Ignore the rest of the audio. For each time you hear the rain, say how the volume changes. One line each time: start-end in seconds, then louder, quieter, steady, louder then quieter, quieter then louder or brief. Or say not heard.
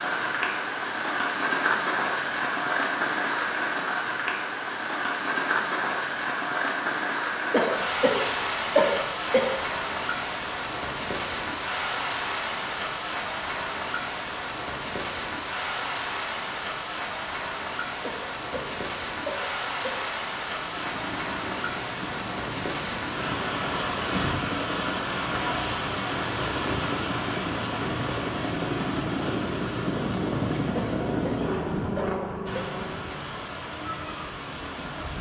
0.0-35.1 quieter.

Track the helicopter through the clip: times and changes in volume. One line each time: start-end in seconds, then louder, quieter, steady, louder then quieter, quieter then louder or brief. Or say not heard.
20.5-33.1 louder.